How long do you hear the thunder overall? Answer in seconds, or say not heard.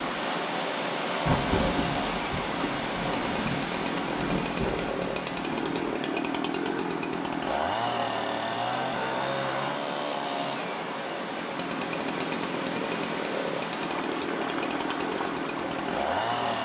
5 s.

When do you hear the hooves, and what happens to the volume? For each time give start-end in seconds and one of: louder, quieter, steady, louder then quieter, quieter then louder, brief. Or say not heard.
not heard.